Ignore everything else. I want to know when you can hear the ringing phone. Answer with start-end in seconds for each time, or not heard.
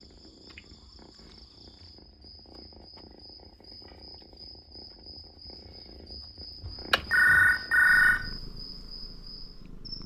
6.6-8.3.